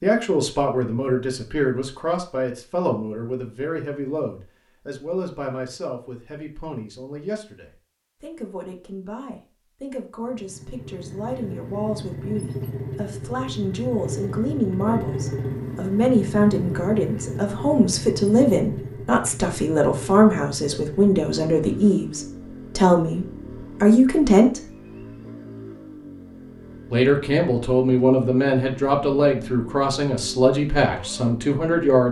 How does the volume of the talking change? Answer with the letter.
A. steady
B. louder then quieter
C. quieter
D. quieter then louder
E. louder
D.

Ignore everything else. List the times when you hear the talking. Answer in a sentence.
The talking can be heard from 0.0 to 24.6 s and from 26.9 to 32.0 s.